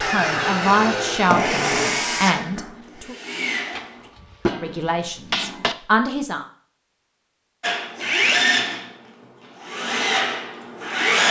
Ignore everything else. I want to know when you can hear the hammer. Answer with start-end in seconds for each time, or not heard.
3.8-5.8.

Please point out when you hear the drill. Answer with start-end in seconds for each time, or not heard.
0.0-3.9, 7.6-11.2.